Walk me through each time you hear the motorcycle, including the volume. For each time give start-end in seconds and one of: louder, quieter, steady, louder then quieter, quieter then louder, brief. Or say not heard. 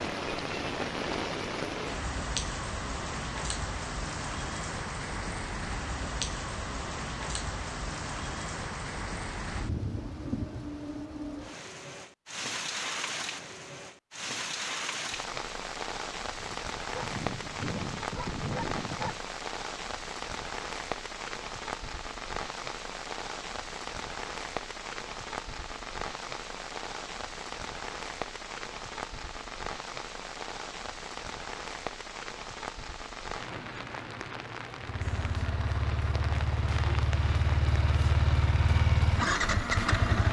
34.8-40.2 louder.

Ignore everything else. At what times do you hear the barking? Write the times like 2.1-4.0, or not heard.
16.4-19.2.